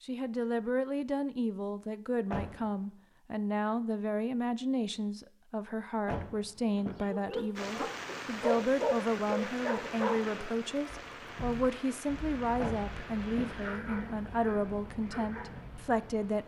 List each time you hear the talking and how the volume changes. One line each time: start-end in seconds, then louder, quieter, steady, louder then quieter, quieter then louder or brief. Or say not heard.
0.0-16.4 steady.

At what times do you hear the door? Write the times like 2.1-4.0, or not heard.
2.3-2.8, 6.0-7.1, 12.6-13.6.